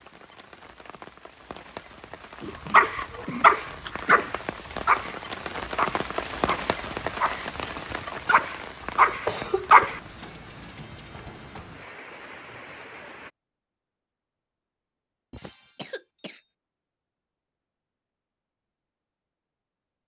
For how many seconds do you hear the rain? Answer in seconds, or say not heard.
13 s.